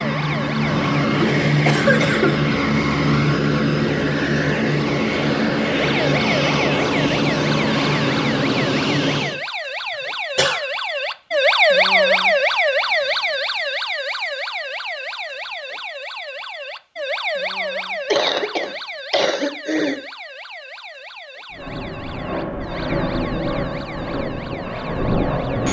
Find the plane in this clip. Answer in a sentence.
The plane can be heard from 0.0 to 9.4 s and from 21.5 to 25.6 s.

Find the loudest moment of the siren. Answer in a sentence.
The volume of the siren peaks at 12 seconds.